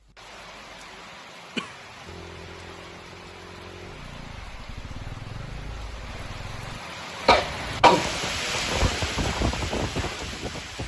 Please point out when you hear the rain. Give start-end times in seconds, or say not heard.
0.0-10.8.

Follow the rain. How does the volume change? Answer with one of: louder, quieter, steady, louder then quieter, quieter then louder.
louder.